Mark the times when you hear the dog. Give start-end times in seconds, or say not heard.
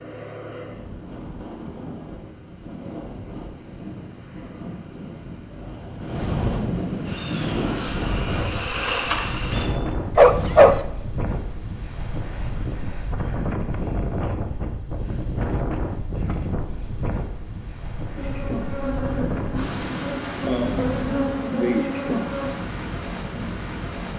10.2-10.8.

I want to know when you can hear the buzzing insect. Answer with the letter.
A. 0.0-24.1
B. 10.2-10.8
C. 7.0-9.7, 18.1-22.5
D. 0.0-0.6
C.